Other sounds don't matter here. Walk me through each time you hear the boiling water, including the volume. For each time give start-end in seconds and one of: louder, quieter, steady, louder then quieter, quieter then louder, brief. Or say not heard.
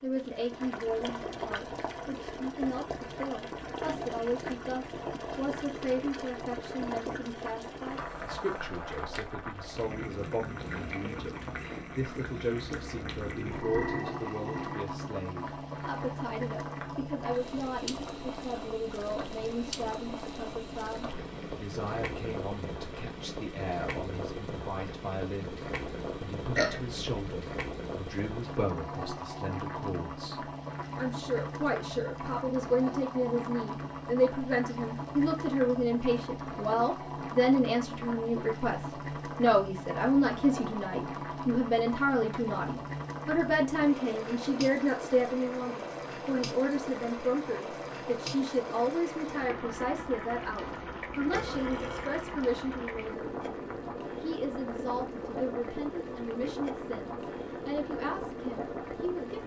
0.0-59.4 steady.